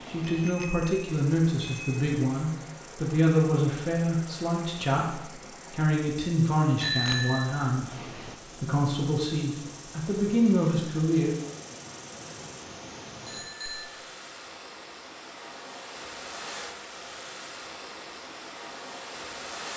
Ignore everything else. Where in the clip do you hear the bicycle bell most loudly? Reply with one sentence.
The volume of the bicycle bell peaks at 7 seconds.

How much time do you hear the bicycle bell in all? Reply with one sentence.
You can hear the bicycle bell for 3 seconds altogether.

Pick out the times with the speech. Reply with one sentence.
The speech can be heard from 0.1 to 11.3 s.